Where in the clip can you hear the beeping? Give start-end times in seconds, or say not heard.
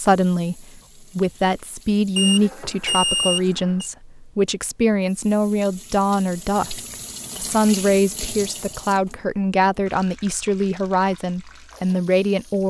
2.1-3.9.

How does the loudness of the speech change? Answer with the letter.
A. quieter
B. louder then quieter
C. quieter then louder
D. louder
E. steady
E.